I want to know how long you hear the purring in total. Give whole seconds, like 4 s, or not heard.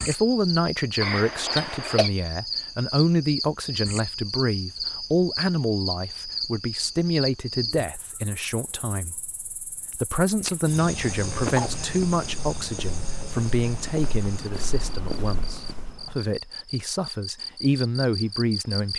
not heard.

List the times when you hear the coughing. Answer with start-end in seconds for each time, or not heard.
1.0-2.1, 10.4-11.7.